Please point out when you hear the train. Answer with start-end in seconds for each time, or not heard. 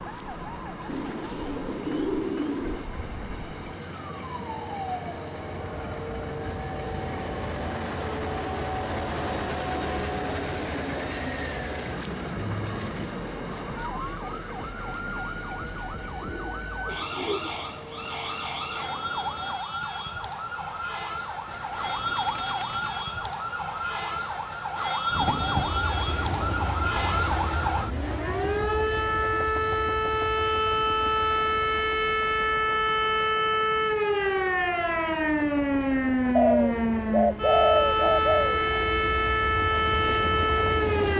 0.0-19.6, 25.1-41.1.